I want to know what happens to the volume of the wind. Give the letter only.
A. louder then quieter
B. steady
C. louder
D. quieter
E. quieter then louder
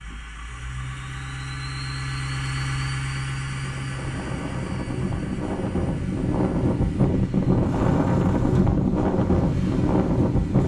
C.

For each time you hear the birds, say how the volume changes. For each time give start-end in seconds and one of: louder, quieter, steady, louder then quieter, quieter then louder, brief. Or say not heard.
not heard.